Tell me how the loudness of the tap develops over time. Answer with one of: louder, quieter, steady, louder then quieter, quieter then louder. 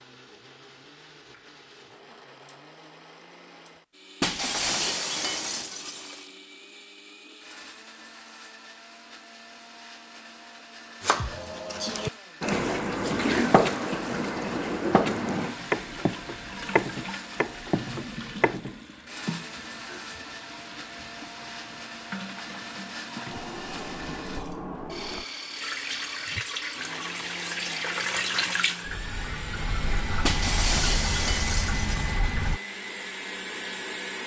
quieter then louder.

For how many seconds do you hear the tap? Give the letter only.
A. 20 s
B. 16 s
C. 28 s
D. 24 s
A.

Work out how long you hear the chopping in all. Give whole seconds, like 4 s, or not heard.
8 s.